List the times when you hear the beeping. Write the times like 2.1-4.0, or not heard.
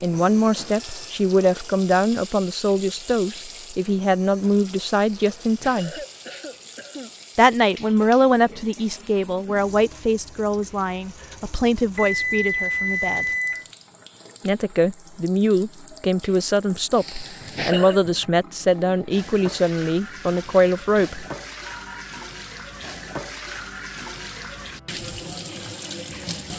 0.6-1.1, 11.9-13.7, 21.6-22.1.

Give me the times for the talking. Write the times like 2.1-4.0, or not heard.
0.0-6.0, 7.3-13.2, 14.4-21.2.